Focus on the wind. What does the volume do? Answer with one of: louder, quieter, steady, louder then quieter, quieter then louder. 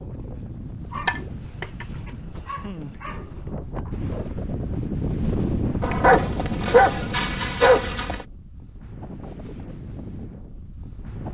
louder then quieter.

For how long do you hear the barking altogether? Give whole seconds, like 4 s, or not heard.
4 s.